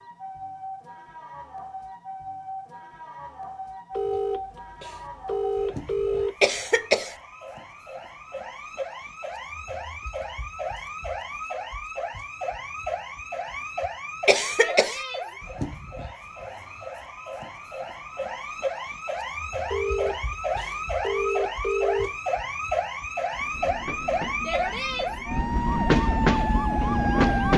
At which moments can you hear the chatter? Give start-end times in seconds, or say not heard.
not heard.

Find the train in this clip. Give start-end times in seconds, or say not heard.
23.4-27.5.